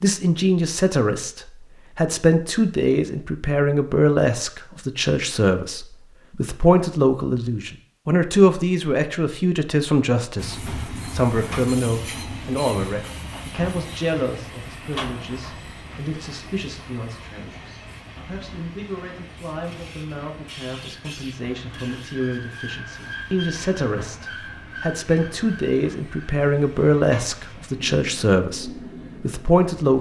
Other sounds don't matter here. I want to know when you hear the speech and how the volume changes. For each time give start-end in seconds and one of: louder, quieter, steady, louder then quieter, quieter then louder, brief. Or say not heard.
0.0-29.9 quieter then louder.